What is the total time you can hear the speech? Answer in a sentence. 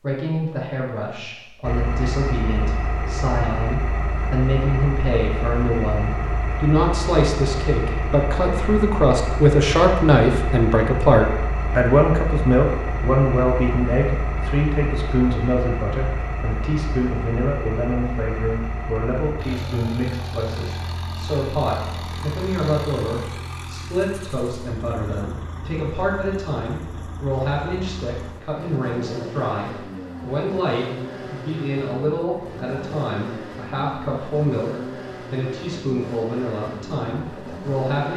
You can hear the speech for 38 seconds altogether.